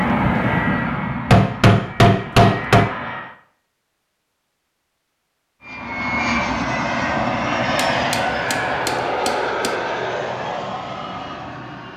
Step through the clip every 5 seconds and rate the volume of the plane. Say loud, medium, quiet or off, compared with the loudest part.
loud, loud, medium.